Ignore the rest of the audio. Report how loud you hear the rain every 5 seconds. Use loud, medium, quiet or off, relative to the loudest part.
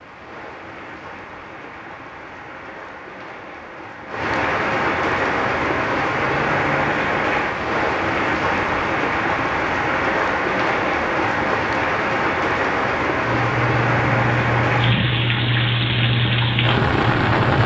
medium, loud, loud, loud.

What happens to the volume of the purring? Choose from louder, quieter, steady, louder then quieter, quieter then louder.
steady.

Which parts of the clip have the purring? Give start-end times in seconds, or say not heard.
13.2-17.6.